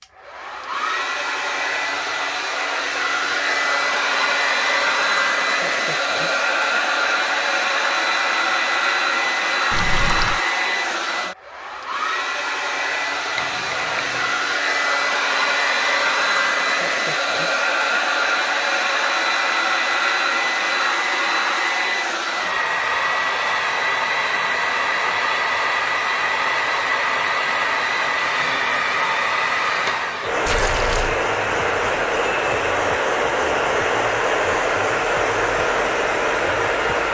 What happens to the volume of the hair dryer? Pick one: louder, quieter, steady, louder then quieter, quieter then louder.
steady.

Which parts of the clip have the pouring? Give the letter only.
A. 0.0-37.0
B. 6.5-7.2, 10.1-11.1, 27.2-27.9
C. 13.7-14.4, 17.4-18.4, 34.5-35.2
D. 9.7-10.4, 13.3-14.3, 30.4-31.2
D.